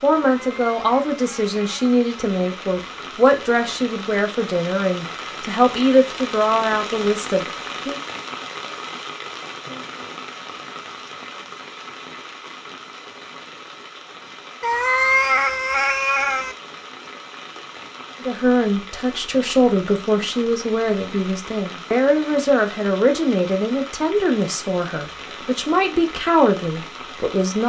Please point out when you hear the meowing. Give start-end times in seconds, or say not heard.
0.3-1.9, 14.6-16.6.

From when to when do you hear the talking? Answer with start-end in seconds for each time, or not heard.
0.0-8.0, 18.2-27.6.